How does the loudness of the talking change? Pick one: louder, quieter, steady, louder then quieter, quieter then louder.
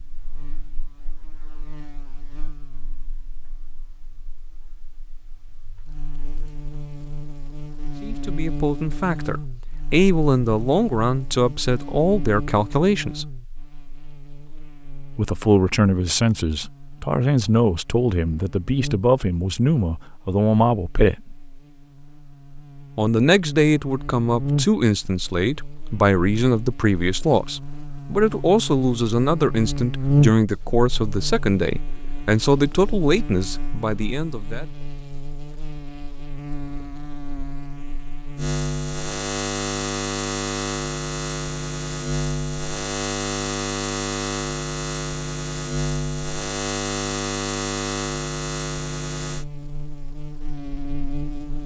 steady.